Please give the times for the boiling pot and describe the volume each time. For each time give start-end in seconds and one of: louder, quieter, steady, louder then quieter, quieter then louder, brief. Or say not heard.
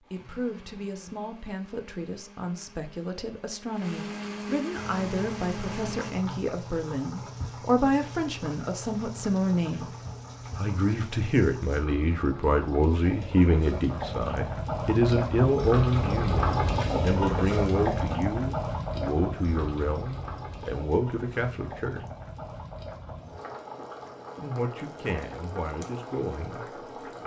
4.7-27.2 louder then quieter.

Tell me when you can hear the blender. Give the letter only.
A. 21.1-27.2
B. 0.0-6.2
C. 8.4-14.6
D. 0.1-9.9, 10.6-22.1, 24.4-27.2
B.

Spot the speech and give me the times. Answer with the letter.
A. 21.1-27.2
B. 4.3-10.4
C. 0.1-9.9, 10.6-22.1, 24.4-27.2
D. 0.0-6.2
C.